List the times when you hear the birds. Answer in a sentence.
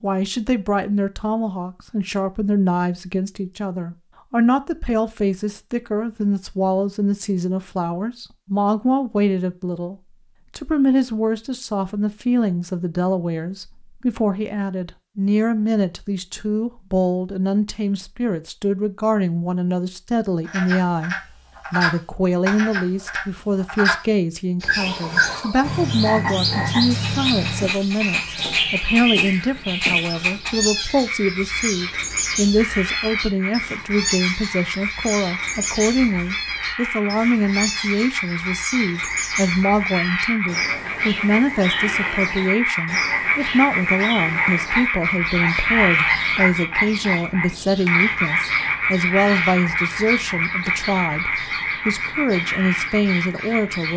The birds can be heard from 24.6 to 53.9 s.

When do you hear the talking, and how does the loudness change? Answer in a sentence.
You can hear the talking from 0.0 to 53.9 s, at a steady volume.